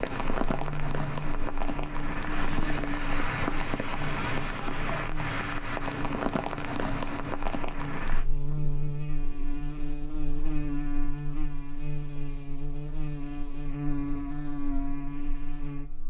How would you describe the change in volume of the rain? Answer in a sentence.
The loudness of the rain stays about the same.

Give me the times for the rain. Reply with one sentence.
The rain can be heard from 0.0 to 8.2 s.